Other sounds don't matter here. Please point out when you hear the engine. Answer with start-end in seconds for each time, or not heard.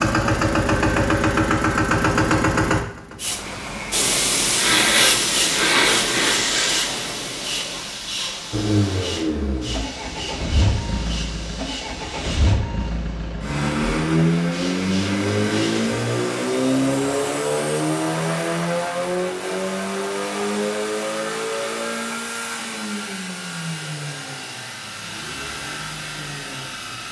0.0-3.8, 8.5-27.0.